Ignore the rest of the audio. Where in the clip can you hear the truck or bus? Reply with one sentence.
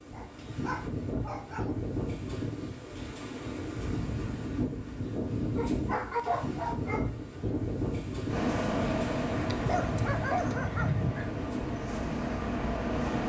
The truck or bus can be heard from 8.2 to 13.2 s.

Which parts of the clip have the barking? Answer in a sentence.
The barking can be heard from 0.1 to 1.8 s, from 5.5 to 7.0 s and from 9.4 to 11.3 s.